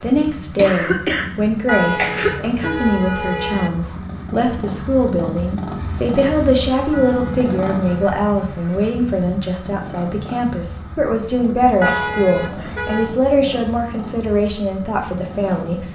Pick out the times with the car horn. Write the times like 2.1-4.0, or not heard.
1.6-3.7, 6.9-8.2, 11.8-13.2.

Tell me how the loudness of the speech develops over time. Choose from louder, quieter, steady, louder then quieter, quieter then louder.
steady.